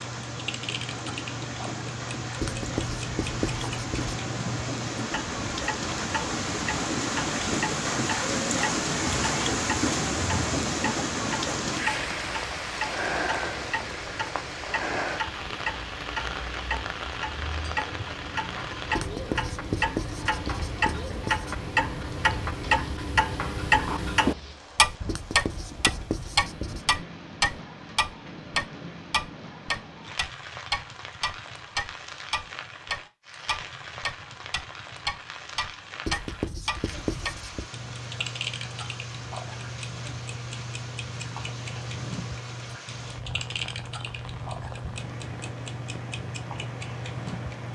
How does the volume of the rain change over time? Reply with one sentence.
The loudness of the rain goes down.